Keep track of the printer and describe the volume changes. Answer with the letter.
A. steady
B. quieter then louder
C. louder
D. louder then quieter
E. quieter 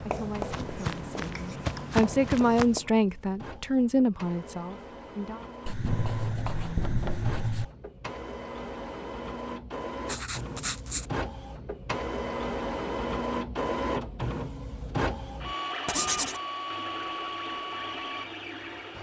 C.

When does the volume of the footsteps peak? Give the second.
2 s.